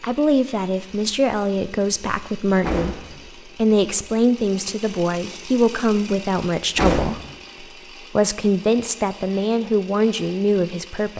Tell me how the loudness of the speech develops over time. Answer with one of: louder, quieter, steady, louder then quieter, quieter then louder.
steady.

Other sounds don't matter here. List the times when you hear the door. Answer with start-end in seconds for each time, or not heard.
2.6-3.2, 6.8-7.3.